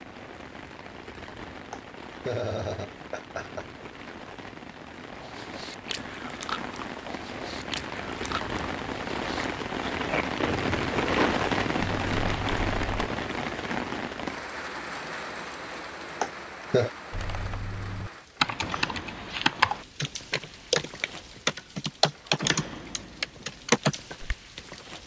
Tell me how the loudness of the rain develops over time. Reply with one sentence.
The volume of the rain goes up, then down.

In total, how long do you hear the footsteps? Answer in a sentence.
You can't hear the footsteps here.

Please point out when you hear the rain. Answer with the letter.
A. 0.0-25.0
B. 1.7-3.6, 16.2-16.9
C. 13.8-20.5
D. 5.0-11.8
A.